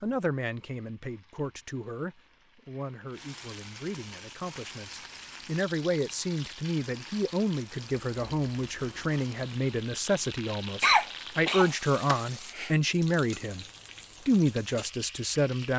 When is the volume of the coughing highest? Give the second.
11 s.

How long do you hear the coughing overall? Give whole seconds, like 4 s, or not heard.
2 s.